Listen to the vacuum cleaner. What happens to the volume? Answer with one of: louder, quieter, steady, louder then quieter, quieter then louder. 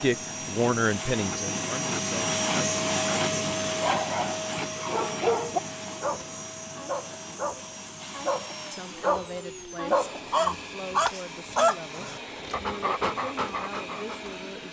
quieter.